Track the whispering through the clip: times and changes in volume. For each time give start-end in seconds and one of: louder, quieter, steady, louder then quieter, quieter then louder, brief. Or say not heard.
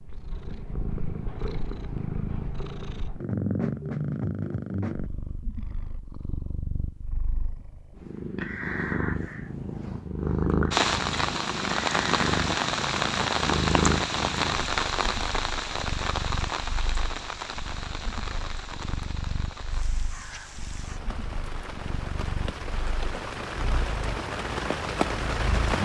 not heard.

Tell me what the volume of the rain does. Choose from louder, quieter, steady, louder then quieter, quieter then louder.
quieter then louder.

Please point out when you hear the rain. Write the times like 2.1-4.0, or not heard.
10.7-25.8.